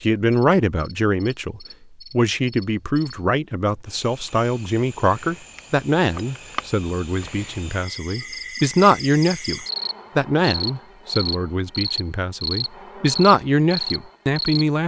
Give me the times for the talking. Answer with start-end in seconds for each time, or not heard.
0.0-14.8.